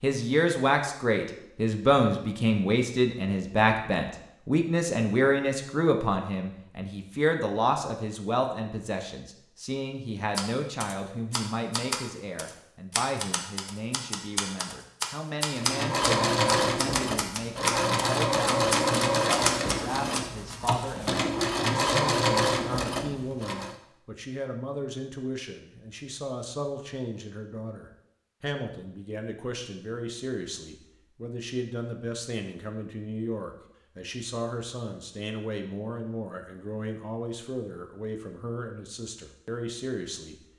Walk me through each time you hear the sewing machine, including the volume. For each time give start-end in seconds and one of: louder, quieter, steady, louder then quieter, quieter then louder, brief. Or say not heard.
15.6-23.8 steady.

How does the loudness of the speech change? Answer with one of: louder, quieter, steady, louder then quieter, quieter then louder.
quieter.